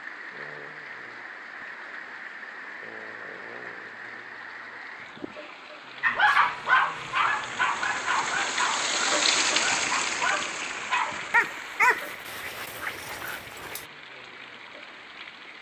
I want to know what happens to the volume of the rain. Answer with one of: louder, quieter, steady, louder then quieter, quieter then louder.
louder then quieter.